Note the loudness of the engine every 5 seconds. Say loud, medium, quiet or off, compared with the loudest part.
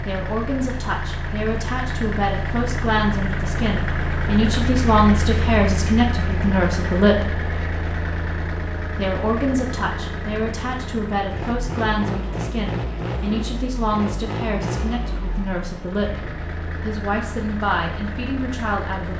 loud, loud, loud, medium.